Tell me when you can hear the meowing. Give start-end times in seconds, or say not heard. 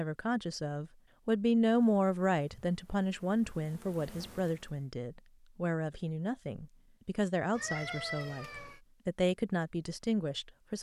7.5-8.8.